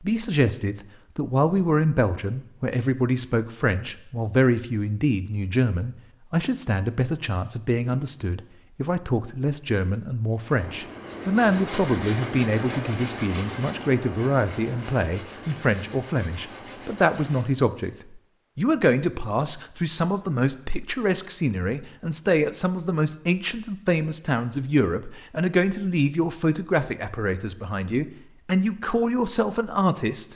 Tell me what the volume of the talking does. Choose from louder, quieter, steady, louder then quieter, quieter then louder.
steady.